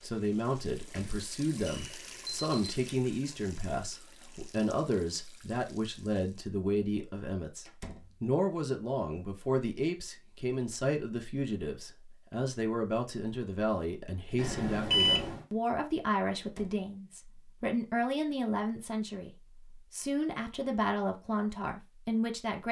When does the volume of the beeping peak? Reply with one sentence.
The volume of the beeping peaks at 15 seconds.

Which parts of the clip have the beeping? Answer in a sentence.
The beeping can be heard from 2.2 to 3.0 s and from 14.3 to 15.4 s.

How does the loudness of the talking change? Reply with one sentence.
The loudness of the talking stays about the same.